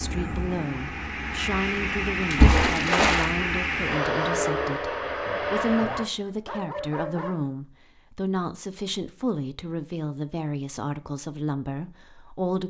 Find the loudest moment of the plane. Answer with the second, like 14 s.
4 s.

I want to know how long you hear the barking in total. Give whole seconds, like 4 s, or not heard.
2 s.